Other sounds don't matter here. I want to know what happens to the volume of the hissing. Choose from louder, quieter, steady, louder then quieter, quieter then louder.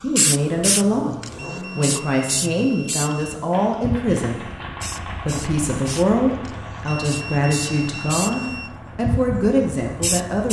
quieter then louder.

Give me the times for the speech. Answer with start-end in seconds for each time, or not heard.
0.0-4.5, 5.2-10.4.